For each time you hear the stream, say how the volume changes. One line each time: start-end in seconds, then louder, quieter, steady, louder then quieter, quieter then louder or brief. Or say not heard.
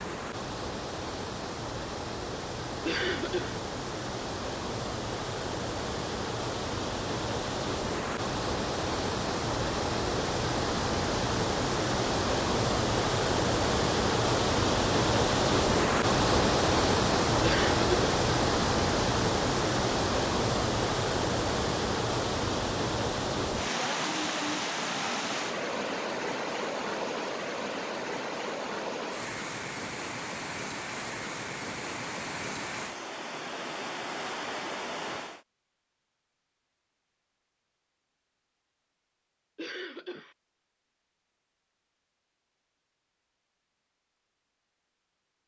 0.0-35.5 louder then quieter.